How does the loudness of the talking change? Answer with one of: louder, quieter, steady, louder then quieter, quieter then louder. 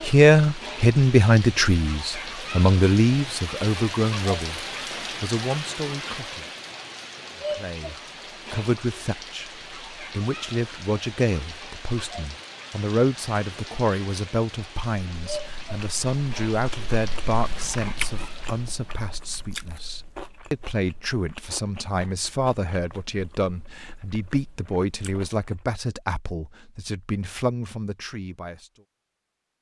quieter.